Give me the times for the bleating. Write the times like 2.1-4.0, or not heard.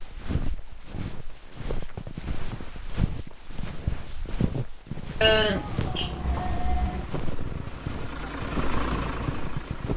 5.2-7.1.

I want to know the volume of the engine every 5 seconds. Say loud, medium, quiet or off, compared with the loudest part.
off, loud.